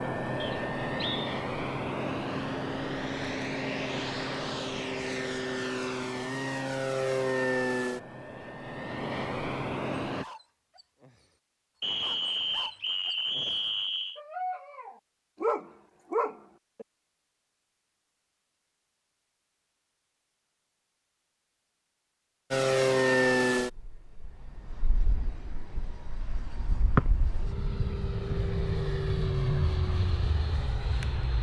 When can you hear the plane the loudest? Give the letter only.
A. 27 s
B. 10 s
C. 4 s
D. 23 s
D.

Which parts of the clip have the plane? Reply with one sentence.
The plane can be heard from 0.0 to 10.2 s and from 22.5 to 31.3 s.